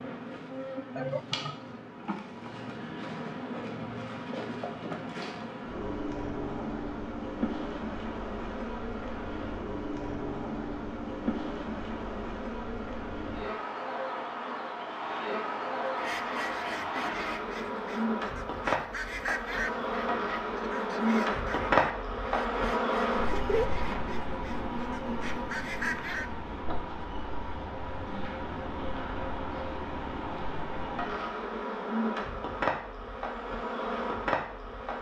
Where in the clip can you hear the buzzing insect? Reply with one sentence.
The buzzing insect can be heard from 0.0 to 34.9 s.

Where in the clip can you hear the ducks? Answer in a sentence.
The ducks can be heard from 15.8 to 26.3 s.